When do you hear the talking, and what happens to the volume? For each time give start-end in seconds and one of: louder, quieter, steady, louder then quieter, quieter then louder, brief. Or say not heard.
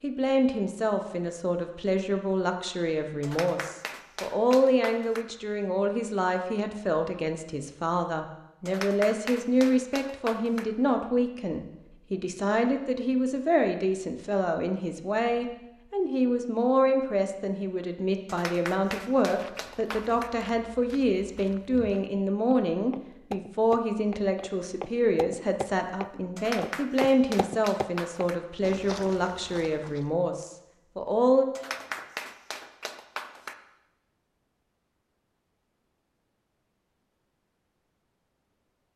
0.0-31.4 steady.